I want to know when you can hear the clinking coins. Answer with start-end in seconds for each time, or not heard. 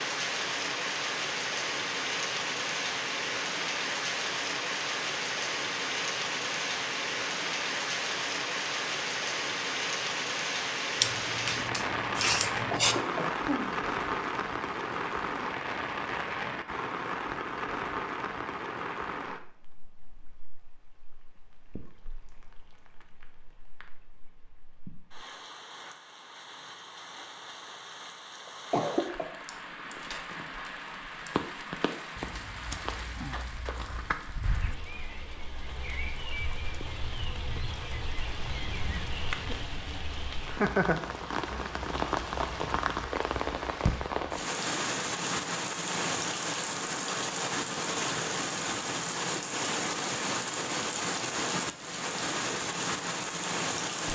not heard.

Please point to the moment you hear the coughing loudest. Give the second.
29 s.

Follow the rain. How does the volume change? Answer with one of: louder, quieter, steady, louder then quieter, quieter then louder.
quieter then louder.